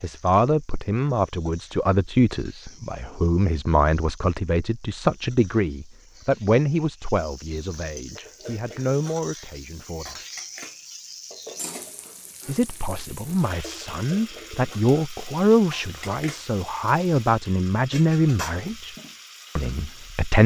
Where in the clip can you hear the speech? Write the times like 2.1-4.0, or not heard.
0.0-10.2, 12.4-18.9, 19.6-20.4.